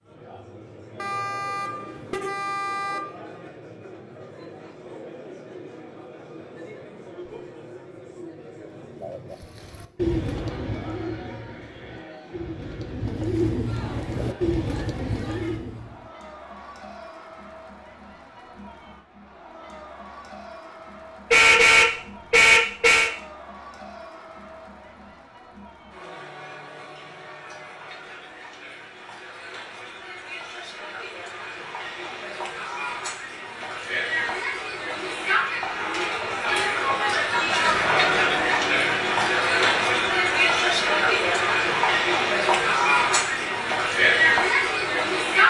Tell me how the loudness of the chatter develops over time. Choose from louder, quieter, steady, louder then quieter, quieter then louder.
louder.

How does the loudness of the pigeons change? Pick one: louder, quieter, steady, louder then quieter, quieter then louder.
quieter then louder.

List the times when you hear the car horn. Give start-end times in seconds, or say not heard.
0.9-3.0, 21.3-23.1, 35.6-37.2.